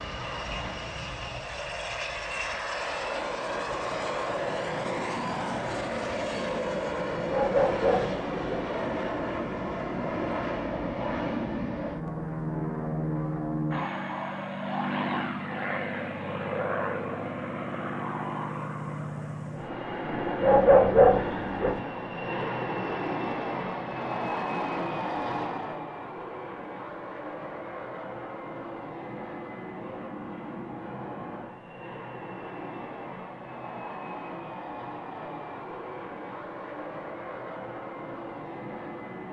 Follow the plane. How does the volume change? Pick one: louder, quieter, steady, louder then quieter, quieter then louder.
quieter.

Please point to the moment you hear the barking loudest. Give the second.
21 s.